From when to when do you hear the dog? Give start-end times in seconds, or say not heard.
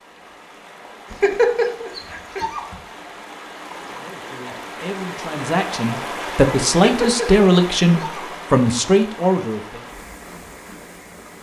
1.1-2.6, 6.8-8.2.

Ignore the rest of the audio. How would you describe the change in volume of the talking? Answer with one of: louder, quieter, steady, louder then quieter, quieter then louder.
louder.